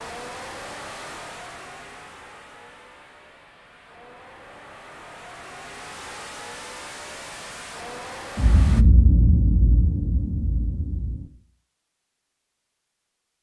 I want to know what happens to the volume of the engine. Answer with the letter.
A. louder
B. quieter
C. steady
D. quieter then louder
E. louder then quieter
D.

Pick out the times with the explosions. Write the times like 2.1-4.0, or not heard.
8.3-11.2.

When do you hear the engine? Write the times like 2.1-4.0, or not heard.
0.0-8.8.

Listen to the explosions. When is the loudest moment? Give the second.
9 s.